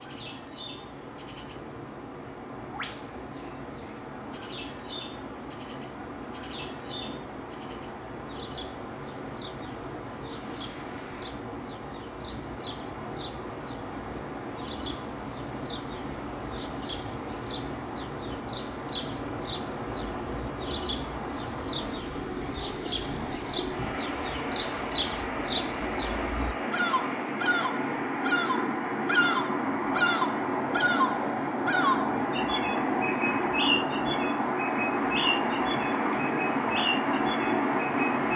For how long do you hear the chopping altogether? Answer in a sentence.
You can't hear the chopping here.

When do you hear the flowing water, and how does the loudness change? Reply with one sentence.
The flowing water can be heard from 0.0 to 38.3 s, getting louder.